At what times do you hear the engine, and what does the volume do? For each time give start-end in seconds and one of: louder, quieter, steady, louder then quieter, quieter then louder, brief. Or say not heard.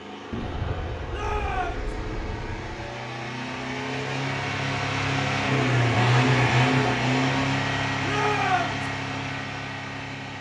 0.0-10.3 louder then quieter.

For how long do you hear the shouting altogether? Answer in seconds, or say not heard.
2 s.